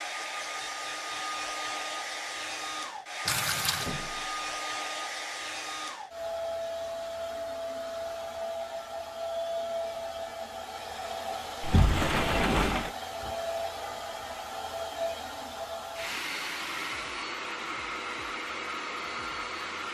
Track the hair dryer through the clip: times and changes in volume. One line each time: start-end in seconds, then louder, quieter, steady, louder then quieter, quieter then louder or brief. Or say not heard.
0.0-19.8 steady.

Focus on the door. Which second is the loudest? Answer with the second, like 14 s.
12 s.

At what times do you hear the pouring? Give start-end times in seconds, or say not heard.
3.2-4.0.